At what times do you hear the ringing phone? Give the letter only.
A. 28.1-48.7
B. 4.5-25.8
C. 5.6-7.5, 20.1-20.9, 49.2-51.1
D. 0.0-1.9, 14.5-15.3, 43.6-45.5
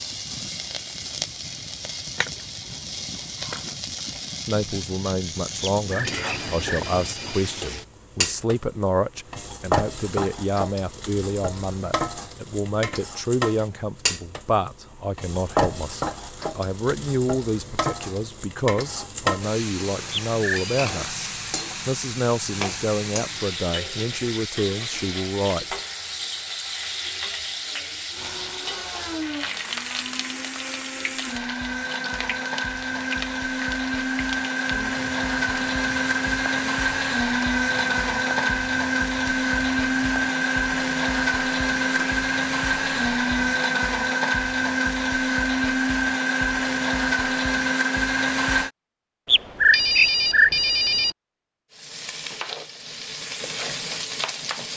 C.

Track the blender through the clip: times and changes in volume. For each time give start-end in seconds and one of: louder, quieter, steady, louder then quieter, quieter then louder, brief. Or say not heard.
28.1-48.7 louder.